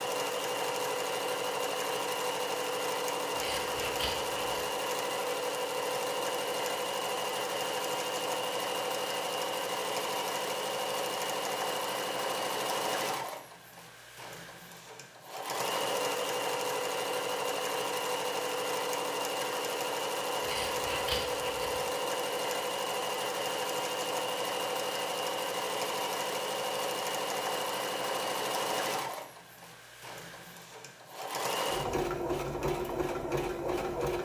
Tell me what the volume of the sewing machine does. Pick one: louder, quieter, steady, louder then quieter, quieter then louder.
steady.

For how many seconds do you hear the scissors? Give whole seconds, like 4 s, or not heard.
3 s.